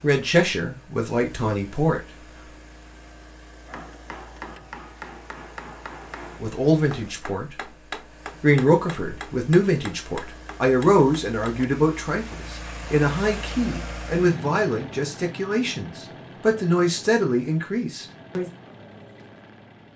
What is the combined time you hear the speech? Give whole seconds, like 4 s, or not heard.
13 s.